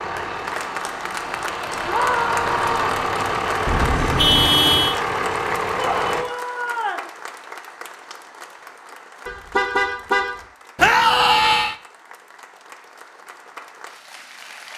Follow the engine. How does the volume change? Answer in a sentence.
The loudness of the engine goes up.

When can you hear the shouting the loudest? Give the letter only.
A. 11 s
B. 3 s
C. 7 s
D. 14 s
A.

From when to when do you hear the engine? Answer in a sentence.
You can hear the engine from 0.0 to 6.2 s.